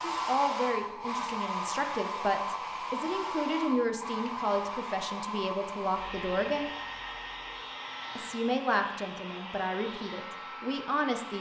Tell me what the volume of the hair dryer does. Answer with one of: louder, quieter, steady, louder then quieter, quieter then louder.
quieter.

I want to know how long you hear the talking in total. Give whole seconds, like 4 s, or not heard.
10 s.